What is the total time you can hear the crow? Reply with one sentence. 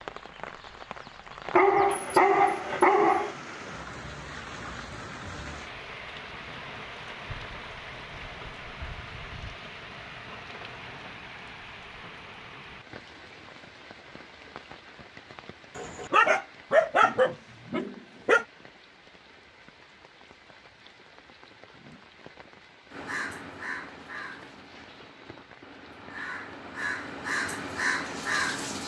You can hear the crow for 6 seconds altogether.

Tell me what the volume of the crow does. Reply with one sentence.
The loudness of the crow goes down, then up.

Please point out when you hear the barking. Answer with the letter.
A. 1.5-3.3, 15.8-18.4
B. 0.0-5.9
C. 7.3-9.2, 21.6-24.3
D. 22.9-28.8
A.